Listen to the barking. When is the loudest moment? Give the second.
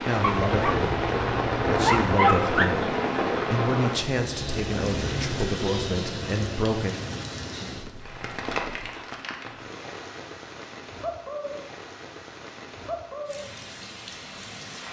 2 s.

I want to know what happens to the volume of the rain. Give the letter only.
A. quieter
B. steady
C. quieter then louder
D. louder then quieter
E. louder
A.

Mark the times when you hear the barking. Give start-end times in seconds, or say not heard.
0.2-2.8.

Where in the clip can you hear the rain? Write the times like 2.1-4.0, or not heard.
0.0-14.8.